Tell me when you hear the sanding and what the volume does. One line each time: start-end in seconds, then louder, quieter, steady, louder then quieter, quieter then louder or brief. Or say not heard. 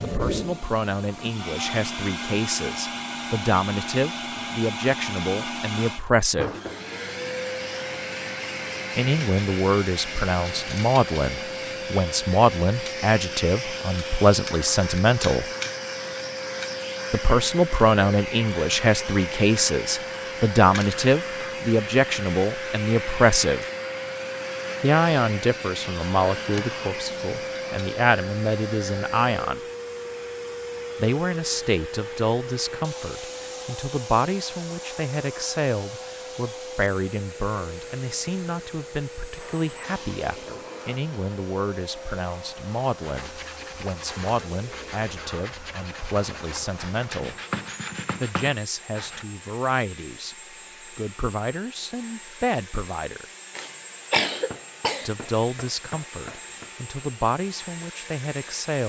43.0-49.2 louder.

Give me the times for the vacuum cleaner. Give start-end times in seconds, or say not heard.
0.0-58.8.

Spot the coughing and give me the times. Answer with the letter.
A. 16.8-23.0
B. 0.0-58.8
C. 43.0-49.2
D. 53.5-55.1
D.